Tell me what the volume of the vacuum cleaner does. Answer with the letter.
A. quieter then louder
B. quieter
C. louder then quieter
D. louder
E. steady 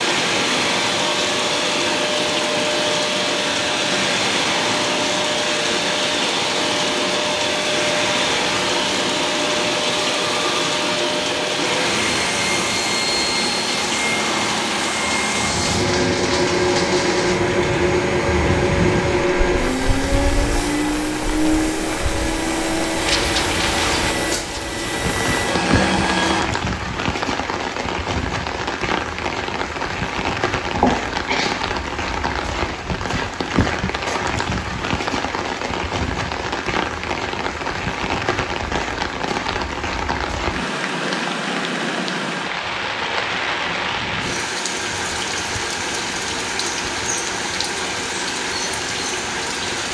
E.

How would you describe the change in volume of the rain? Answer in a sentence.
The loudness of the rain stays about the same.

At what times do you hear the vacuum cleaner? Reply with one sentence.
The vacuum cleaner can be heard from 0.0 to 26.4 s.